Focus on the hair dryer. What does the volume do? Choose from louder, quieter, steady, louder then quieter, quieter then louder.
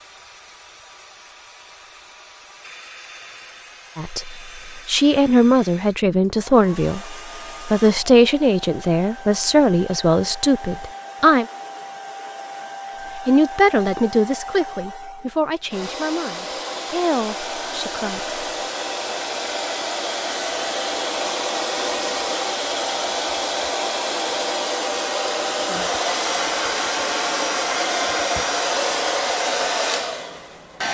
louder.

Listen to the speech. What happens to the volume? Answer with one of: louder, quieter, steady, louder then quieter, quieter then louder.
quieter.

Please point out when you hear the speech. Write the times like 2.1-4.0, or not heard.
4.0-11.4, 13.2-18.4.